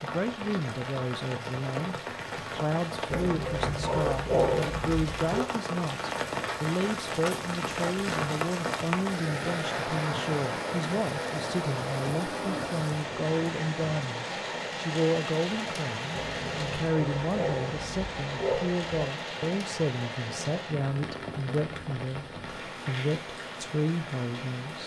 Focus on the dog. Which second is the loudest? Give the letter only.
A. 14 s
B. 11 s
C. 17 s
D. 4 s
D.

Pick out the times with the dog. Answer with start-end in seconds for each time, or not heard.
3.1-5.5, 16.1-18.9.